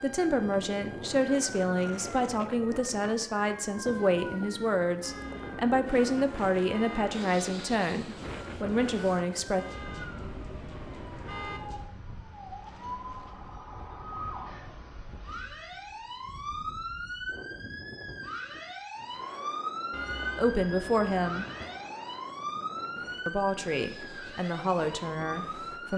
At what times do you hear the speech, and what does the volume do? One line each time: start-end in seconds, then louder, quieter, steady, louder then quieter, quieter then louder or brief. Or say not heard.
0.0-9.7 steady
20.4-21.4 brief
23.2-25.9 brief.